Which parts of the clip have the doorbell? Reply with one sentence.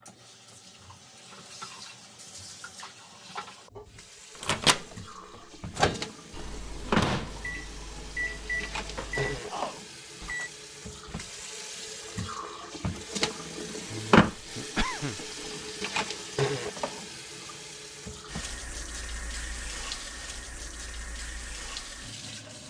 The doorbell can't be heard in this clip.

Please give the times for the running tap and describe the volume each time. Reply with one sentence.
You can hear the running tap from 0.0 to 22.6 s, getting louder then quieter.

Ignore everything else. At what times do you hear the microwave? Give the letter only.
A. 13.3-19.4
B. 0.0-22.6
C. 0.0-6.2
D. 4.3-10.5
D.